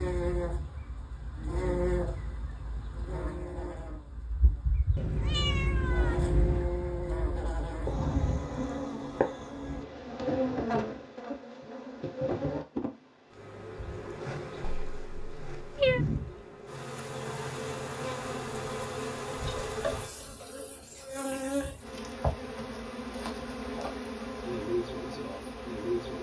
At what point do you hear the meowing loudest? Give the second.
16 s.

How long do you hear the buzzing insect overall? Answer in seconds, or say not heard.
26 s.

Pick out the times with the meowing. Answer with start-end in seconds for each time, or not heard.
5.0-6.7, 14.6-16.1.